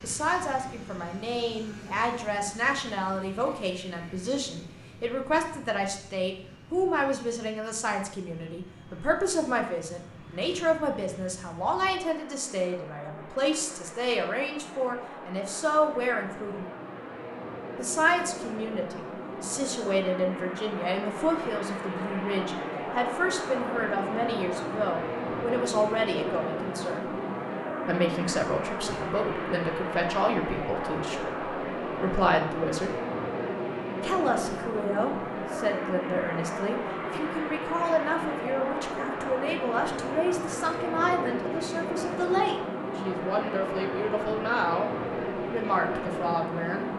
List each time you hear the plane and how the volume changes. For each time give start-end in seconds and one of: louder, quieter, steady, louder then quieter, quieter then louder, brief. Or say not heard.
0.0-46.9 louder.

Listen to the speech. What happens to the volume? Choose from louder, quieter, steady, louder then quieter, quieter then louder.
steady.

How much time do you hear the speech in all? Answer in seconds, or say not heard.
44 s.